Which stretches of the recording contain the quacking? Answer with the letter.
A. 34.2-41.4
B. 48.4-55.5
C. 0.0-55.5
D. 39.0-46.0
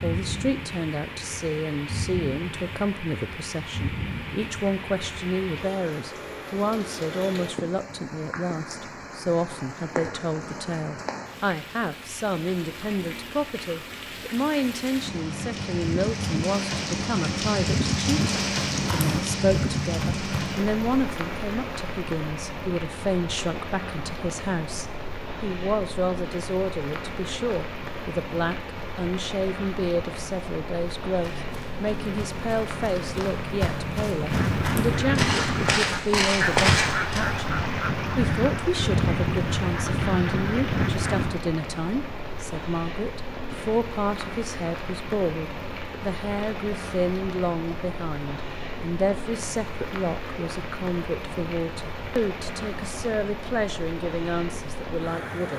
A.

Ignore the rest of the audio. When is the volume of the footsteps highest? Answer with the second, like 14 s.
37 s.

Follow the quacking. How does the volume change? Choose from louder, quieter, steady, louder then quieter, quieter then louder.
steady.